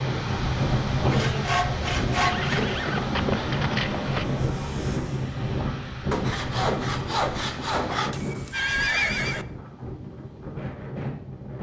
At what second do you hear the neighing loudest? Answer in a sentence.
The volume of the neighing peaks at 9 seconds.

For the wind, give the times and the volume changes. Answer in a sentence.
You can hear the wind from 0.0 to 11.5 s, getting quieter.